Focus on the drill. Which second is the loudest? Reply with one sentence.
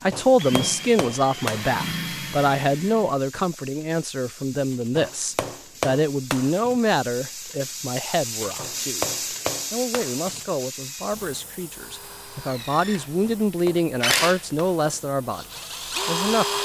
The loudest moment of the drill is at 16 seconds.